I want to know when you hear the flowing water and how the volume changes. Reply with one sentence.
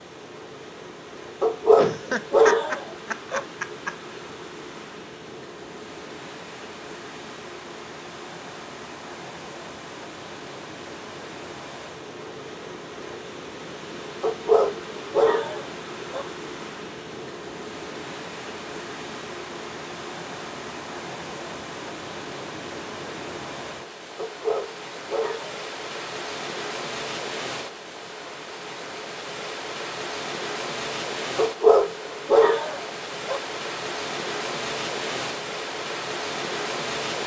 You can hear the flowing water from 0.0 to 37.2 s, getting louder.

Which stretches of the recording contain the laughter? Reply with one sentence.
You can hear the laughter from 1.8 to 4.3 s.